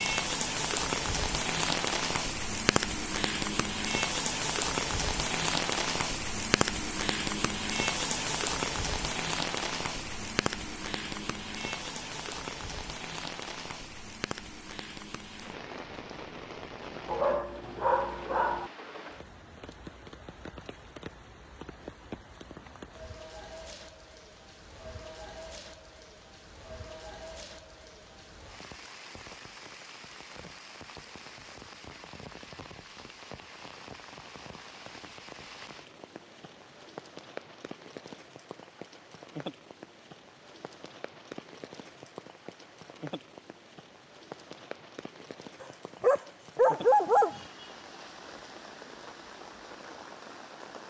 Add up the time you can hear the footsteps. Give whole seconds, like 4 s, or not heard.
not heard.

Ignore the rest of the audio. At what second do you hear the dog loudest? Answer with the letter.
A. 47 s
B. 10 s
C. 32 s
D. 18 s
A.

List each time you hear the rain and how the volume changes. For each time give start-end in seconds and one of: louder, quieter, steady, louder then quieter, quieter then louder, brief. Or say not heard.
0.0-50.8 quieter.